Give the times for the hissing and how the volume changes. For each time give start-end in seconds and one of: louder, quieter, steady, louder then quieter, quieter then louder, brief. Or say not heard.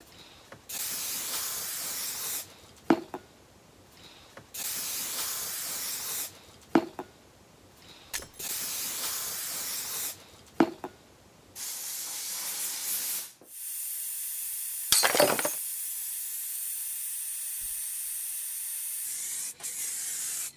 0.0-20.5 quieter.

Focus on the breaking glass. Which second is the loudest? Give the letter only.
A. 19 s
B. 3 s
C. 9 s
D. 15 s
D.